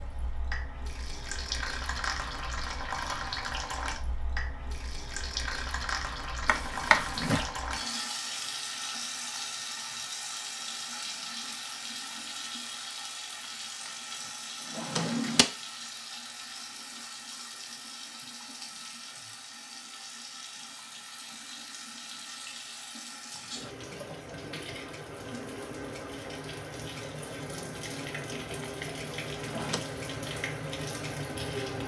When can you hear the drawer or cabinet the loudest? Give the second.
7 s.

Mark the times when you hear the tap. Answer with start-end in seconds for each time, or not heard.
0.0-31.8.